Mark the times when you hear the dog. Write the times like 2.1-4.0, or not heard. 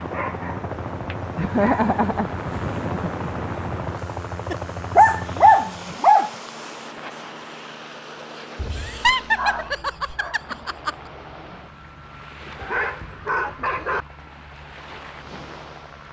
0.1-1.9, 4.5-6.3, 8.6-10.3, 12.6-14.1.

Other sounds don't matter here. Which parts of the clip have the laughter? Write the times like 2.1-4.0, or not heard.
1.4-3.3, 8.7-10.9.